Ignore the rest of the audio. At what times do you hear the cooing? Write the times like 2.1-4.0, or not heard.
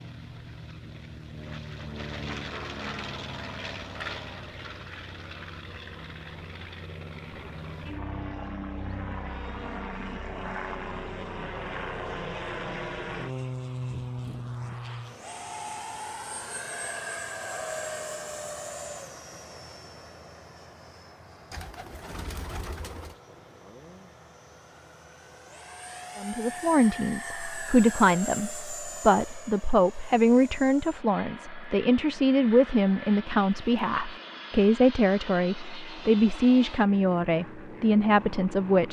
21.5-23.1.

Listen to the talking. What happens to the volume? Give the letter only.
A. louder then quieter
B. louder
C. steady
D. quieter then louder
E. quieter
C.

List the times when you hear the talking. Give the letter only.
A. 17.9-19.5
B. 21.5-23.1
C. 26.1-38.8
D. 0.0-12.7
C.